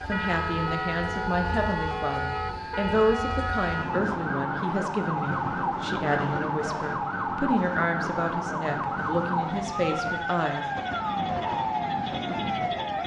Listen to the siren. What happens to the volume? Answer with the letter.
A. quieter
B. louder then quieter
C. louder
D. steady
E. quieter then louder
D.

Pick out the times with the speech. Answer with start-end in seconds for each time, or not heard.
0.1-10.7.